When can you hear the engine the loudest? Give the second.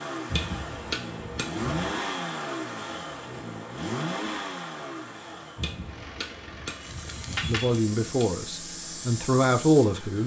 2 s.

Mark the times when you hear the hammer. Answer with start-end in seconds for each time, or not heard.
0.3-1.6, 5.5-8.2.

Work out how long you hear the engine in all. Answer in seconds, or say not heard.
10 s.